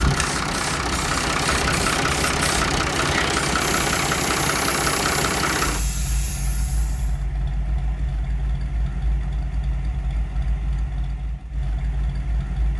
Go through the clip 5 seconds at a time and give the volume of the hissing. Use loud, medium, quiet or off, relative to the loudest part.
loud, medium, off.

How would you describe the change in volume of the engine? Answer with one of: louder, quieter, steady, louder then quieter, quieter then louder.
quieter.